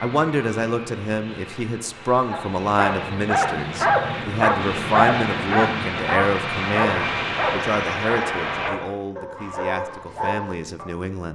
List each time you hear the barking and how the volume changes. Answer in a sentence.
You can hear the barking from 2.3 to 10.9 s, getting quieter.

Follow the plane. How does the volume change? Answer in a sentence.
The loudness of the plane goes up.